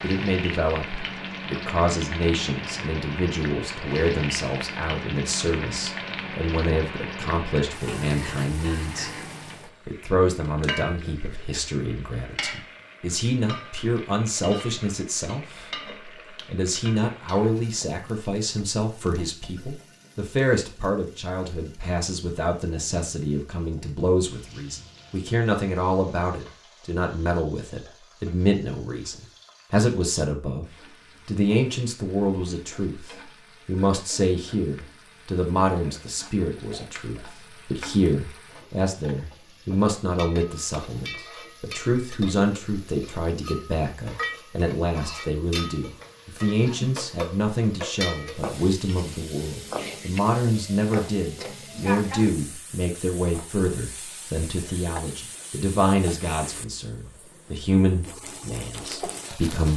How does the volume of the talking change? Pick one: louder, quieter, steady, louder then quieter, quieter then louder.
steady.